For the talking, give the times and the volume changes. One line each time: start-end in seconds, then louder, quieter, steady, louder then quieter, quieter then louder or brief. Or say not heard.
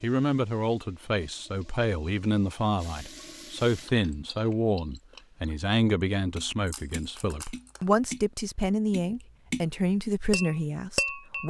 0.0-11.4 steady.